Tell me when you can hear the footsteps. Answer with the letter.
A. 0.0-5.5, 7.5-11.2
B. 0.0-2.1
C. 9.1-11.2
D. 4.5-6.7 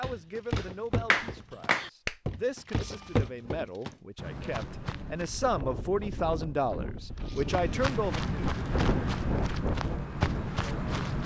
A.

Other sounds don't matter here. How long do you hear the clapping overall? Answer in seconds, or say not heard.
2 s.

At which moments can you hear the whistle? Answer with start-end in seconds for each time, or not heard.
not heard.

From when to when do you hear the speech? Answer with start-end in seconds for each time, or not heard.
0.0-8.2.